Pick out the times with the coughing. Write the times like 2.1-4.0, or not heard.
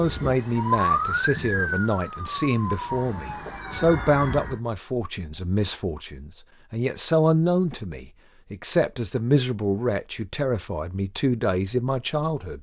not heard.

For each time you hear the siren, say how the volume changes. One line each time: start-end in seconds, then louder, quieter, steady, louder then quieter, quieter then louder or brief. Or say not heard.
0.0-4.6 quieter.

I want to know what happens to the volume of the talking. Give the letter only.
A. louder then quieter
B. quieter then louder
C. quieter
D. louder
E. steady
E.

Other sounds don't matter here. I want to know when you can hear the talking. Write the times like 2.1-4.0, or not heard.
0.0-12.5.